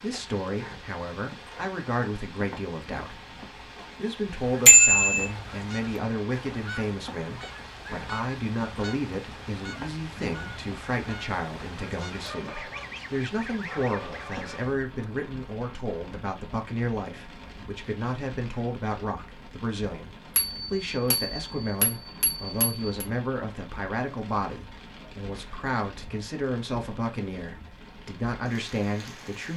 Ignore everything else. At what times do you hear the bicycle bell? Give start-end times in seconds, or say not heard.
4.7-5.2, 20.4-23.1.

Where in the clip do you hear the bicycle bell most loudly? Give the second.
5 s.